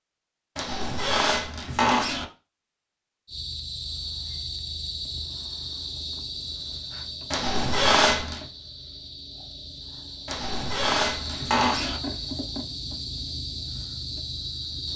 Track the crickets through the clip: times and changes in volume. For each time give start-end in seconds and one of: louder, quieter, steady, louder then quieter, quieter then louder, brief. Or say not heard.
3.2-14.9 quieter then louder.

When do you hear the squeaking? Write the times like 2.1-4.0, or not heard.
0.6-2.2, 7.3-8.4, 10.2-12.0.